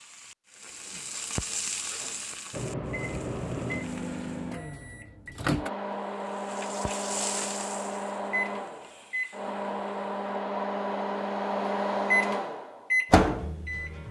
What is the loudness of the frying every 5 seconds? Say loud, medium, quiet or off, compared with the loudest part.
loud, loud, off.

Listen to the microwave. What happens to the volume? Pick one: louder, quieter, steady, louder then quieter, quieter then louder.
louder.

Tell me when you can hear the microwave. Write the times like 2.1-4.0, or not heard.
2.5-14.0.